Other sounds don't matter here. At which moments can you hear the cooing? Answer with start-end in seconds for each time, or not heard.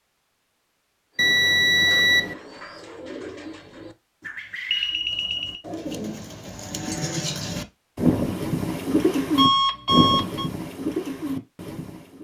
1.1-12.1.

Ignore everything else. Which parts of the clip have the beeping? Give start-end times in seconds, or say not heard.
1.1-2.4, 4.7-5.6, 9.3-10.5.